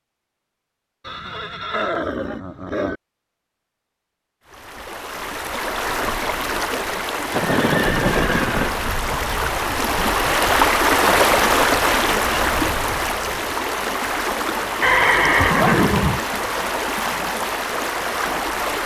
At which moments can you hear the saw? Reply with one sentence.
You can't hear the saw here.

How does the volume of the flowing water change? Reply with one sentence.
The volume of the flowing water goes up, then down.